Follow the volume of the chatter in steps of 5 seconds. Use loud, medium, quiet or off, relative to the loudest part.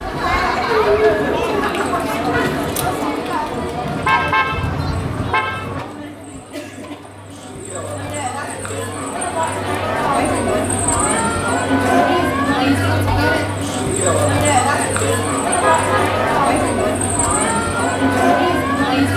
loud, medium, loud, loud.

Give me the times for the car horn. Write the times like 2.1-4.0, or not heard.
3.8-5.8, 15.6-16.1.